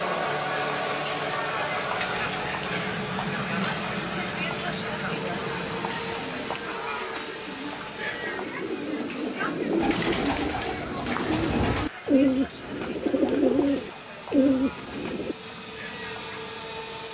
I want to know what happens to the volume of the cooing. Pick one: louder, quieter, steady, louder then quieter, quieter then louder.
louder.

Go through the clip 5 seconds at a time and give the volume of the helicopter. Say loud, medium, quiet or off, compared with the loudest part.
loud, loud, quiet, loud.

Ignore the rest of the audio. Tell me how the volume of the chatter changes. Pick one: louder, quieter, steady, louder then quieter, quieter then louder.
quieter.